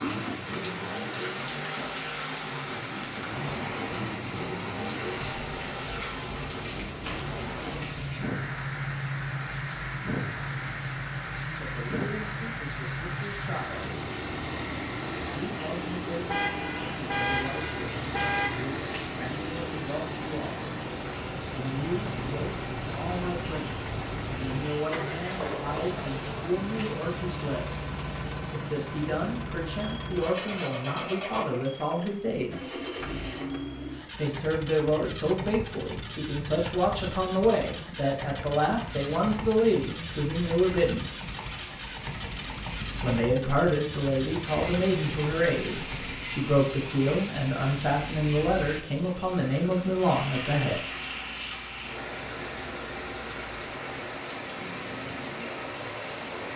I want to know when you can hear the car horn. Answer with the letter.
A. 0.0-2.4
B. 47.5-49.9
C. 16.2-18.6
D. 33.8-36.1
C.